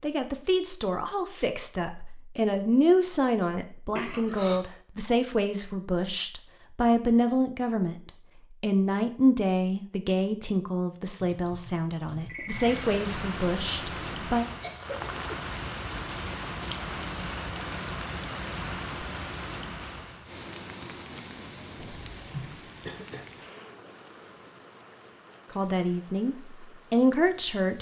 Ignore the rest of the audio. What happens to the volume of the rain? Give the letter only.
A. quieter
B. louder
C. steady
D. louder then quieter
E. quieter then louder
A.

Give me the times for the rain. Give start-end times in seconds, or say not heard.
12.5-27.7.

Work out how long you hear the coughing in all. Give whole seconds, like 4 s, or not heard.
3 s.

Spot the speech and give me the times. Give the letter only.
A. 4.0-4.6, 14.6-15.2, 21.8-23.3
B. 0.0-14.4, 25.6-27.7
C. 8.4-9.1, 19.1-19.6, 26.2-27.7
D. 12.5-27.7
B.